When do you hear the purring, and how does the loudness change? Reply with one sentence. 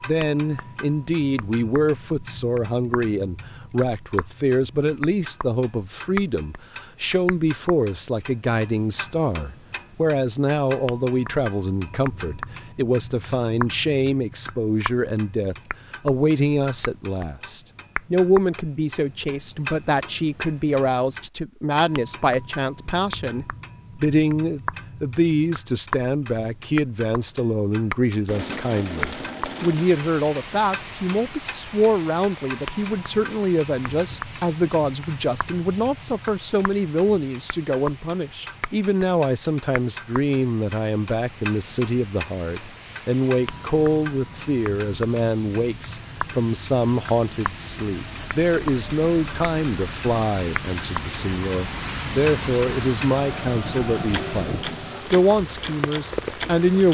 The purring can't be heard in this clip.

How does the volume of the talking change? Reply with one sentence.
The volume of the talking stays about the same.